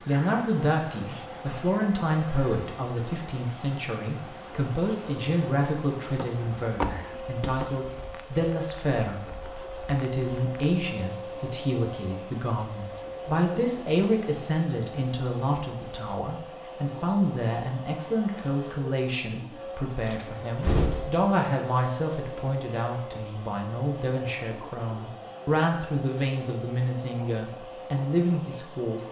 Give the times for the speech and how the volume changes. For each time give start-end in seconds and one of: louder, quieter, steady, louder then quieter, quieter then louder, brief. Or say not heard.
0.1-29.0 steady.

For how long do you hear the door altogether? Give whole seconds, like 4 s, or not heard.
3 s.